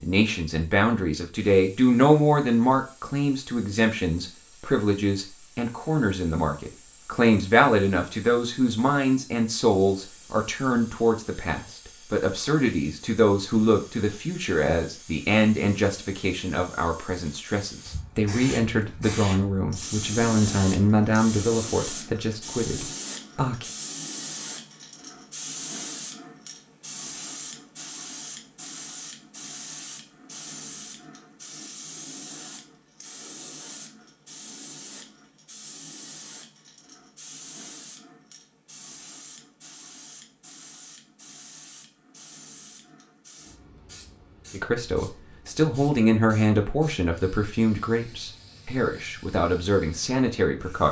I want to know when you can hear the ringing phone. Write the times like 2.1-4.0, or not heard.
not heard.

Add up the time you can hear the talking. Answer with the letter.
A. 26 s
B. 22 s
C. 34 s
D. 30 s
D.